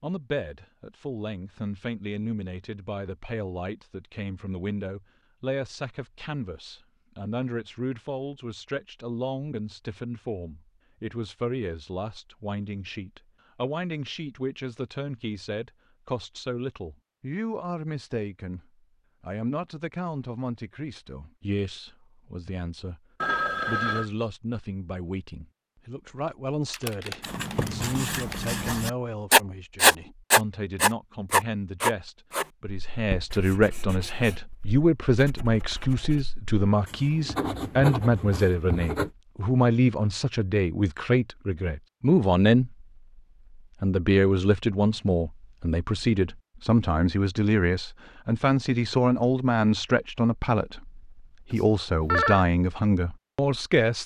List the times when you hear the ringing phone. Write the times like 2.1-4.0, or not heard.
23.2-24.1, 51.5-52.5.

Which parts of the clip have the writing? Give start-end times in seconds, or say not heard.
27.2-39.1.